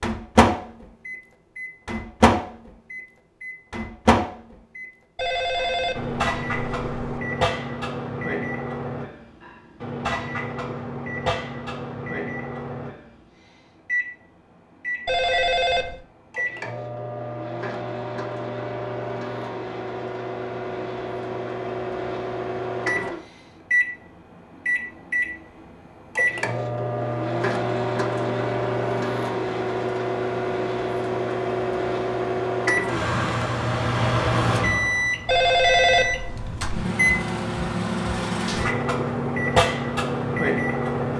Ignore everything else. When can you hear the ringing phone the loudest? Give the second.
36 s.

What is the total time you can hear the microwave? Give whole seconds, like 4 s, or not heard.
41 s.